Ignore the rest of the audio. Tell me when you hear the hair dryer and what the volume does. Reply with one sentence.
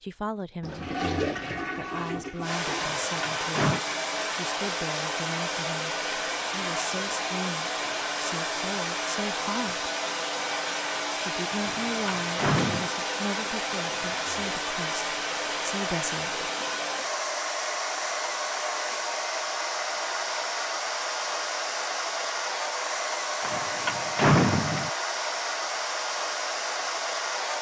The hair dryer can be heard from 2.4 to 27.5 s, at a steady volume.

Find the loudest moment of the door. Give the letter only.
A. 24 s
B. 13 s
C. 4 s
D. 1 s
A.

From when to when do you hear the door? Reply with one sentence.
You can hear the door from 2.8 to 3.8 s, from 11.6 to 12.9 s and from 23.4 to 24.9 s.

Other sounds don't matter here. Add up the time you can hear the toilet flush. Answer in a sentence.
The toilet flush can be heard for 3 seconds in total.